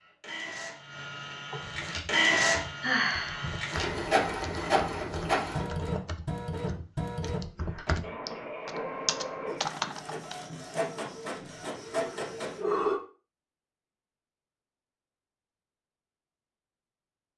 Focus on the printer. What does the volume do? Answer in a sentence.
The volume of the printer goes down.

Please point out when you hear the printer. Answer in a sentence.
The printer can be heard from 0.0 to 12.6 s.